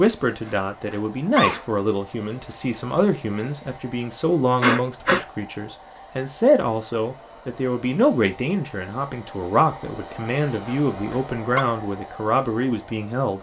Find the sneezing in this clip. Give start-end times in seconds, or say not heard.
0.5-1.6, 4.6-5.2, 10.7-11.7.